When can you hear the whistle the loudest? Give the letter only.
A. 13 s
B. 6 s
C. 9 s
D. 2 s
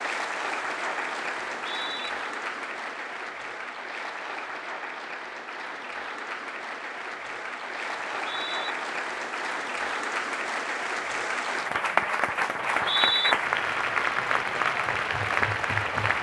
A.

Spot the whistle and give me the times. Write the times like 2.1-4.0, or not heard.
1.4-2.1, 8.1-8.8, 12.6-13.3.